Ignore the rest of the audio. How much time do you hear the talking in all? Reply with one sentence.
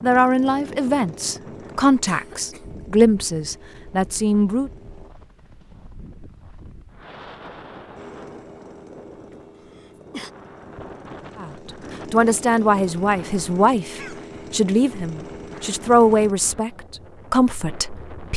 The talking can be heard for 12 seconds in total.